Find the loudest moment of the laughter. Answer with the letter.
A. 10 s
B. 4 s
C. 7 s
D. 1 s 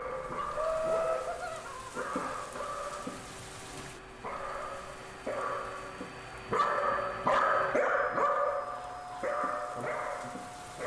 D.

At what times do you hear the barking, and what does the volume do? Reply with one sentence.
The barking can be heard from 0.0 to 10.8 s, getting louder then quieter.